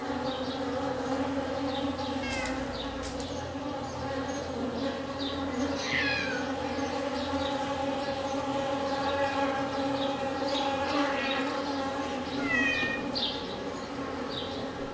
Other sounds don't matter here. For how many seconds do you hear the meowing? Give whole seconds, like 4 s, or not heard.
3 s.